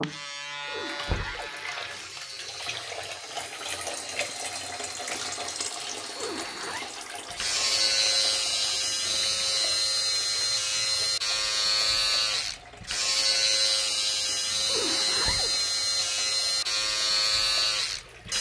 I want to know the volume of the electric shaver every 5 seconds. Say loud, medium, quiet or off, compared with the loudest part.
quiet, loud, loud, loud.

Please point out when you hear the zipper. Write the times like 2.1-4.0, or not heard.
0.7-2.5, 6.2-7.0, 14.7-15.6.